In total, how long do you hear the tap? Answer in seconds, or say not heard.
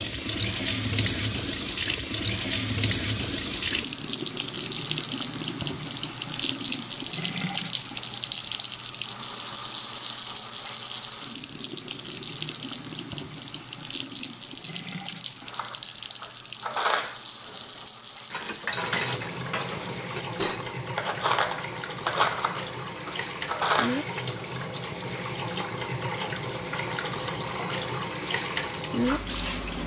30 s.